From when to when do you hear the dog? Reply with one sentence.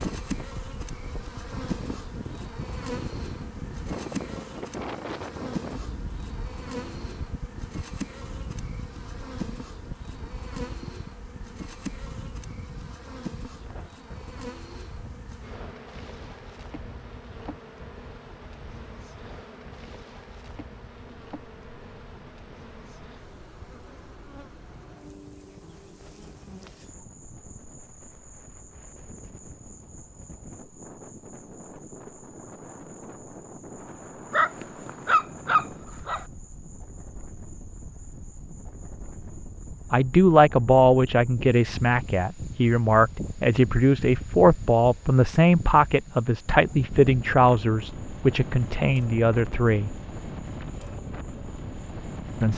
You can hear the dog from 34.3 to 36.2 s.